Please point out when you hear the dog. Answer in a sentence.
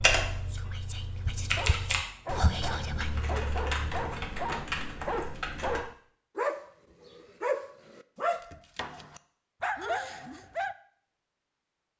The dog can be heard from 1.6 to 10.8 s.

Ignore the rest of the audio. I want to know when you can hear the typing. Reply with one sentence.
You can hear the typing from 0.0 to 5.8 s.